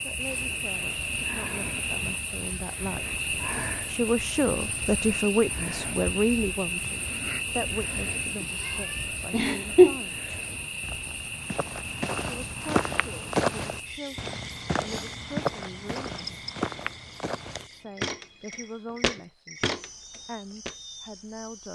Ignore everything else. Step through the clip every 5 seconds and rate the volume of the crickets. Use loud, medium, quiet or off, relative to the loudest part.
loud, loud, medium, medium, quiet.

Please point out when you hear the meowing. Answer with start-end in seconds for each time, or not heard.
8.4-9.9.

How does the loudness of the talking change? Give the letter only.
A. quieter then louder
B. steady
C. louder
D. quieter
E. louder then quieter
E.